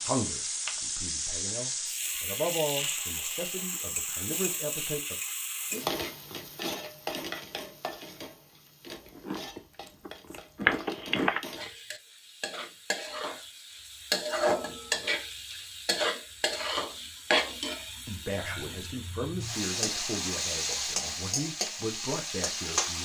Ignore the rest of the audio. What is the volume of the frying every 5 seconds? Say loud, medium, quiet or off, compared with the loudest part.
loud, medium, loud, loud, loud.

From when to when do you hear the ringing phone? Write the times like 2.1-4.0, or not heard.
10.7-11.4.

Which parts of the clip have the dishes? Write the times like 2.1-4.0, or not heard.
not heard.